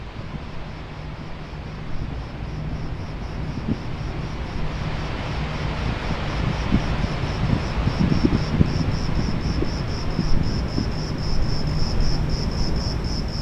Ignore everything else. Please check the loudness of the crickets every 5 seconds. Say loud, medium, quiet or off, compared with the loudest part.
medium, loud, loud.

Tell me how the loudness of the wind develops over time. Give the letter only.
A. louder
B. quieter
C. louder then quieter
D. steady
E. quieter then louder
C.